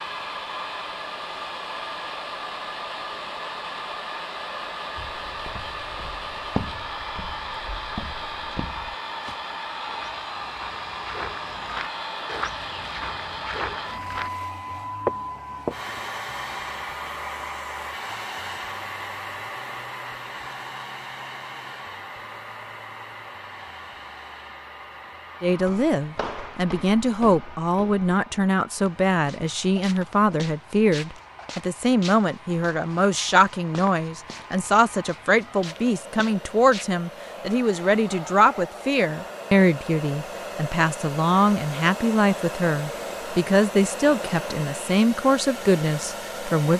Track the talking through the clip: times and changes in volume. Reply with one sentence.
You can hear the talking from 25.4 to 46.7 s, at a steady volume.